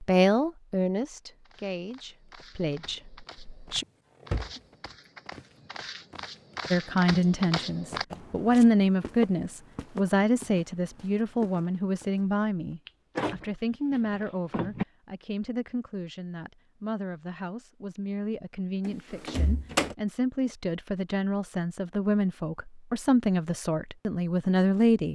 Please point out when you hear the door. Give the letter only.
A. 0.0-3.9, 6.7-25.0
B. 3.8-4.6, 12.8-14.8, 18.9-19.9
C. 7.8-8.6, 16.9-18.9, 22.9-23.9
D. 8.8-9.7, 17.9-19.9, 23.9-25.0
B.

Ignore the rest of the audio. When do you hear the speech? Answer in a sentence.
The speech can be heard from 0.0 to 3.9 s and from 6.7 to 25.0 s.